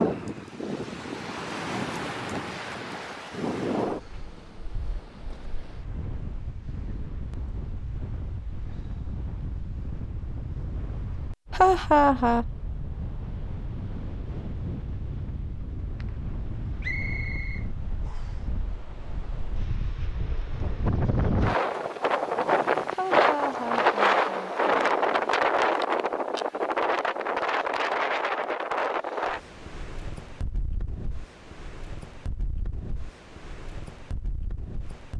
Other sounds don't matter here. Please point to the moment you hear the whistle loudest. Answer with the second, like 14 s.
17 s.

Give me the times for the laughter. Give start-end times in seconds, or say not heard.
11.5-12.4, 22.9-25.3.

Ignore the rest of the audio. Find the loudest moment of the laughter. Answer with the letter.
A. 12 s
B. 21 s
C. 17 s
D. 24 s
A.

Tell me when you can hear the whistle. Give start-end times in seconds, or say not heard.
16.8-18.4.